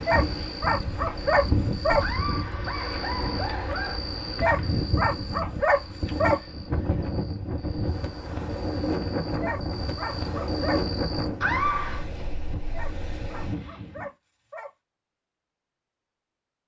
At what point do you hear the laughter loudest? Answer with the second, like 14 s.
12 s.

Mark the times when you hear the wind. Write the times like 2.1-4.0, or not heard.
0.0-14.1.